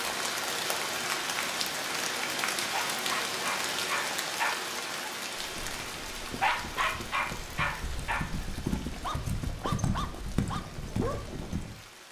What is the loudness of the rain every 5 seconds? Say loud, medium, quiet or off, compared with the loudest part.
loud, medium, quiet.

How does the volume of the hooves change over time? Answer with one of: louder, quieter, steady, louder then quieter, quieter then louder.
louder.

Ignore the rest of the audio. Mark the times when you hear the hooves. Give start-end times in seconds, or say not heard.
5.3-11.8.